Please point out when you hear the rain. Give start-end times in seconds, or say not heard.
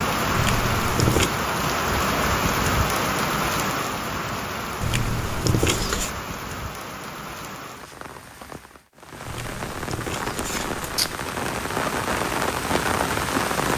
0.0-13.7.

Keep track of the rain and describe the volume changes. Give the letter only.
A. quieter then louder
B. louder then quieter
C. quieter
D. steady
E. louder
A.